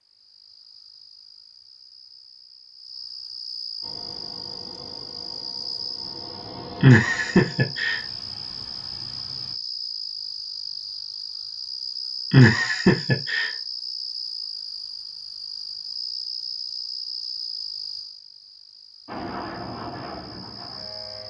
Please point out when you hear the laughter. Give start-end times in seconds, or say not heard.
6.8-8.0, 12.3-13.5.